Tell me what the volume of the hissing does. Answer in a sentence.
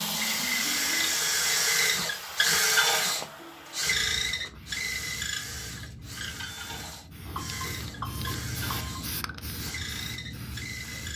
The volume of the hissing goes down, then up.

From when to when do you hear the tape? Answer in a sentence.
The tape can't be heard in this clip.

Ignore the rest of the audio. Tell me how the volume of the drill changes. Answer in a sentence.
The loudness of the drill goes down.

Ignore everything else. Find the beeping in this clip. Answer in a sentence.
The beeping can be heard from 7.3 to 9.1 s.